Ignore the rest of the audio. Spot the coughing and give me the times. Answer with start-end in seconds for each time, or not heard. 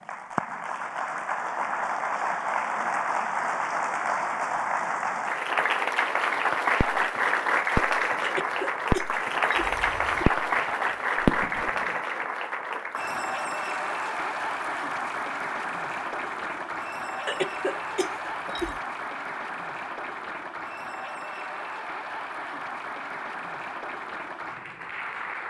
8.2-10.2, 17.2-18.8.